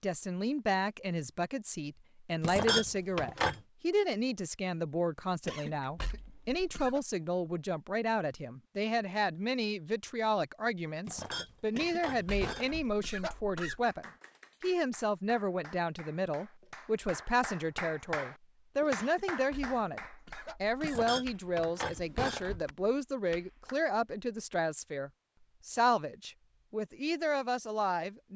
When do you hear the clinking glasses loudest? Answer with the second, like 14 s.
3 s.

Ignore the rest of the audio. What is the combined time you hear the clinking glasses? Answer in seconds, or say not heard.
5 s.